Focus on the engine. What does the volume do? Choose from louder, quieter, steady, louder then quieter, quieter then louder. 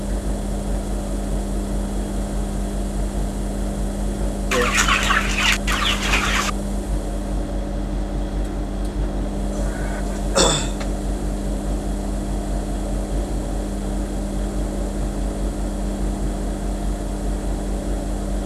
steady.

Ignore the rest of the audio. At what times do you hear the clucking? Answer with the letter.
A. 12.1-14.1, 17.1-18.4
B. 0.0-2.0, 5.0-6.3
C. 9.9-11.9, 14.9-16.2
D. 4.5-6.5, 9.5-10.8
D.